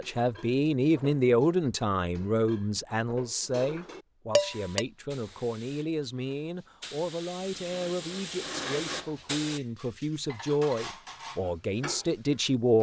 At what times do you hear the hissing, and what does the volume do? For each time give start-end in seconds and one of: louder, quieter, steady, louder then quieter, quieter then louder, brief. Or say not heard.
4.5-9.6 quieter then louder.